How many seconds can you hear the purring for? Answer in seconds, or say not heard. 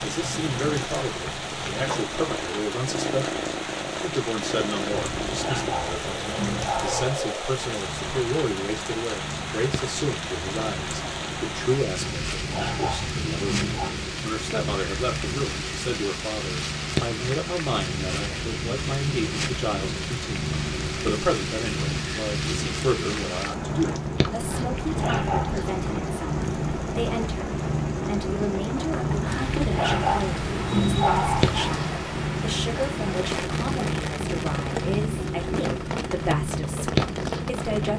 38 s.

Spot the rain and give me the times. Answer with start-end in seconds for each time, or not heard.
0.0-37.9.